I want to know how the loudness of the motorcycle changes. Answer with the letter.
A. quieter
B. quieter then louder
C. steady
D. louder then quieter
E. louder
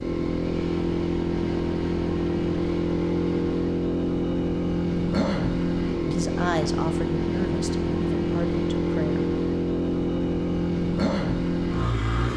C.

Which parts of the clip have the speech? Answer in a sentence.
You can hear the speech from 6.0 to 9.2 s.